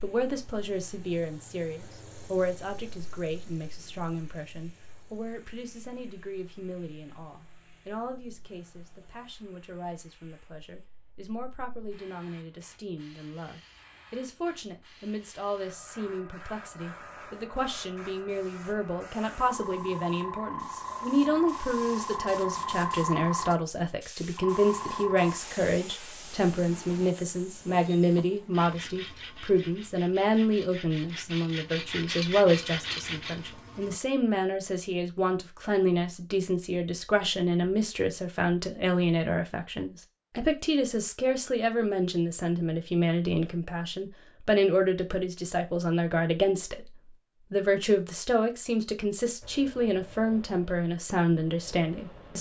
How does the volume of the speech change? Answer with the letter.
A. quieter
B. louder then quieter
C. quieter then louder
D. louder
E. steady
D.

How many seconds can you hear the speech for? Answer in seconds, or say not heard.
52 s.